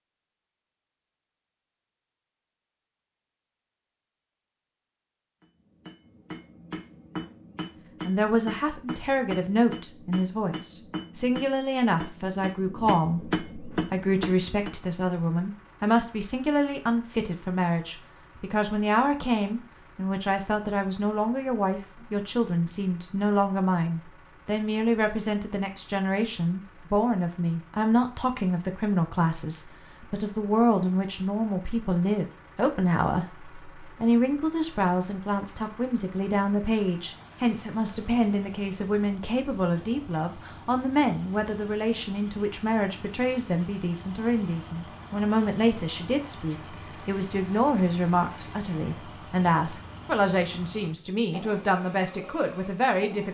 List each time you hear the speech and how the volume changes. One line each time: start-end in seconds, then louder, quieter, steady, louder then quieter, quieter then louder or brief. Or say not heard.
8.0-53.2 steady.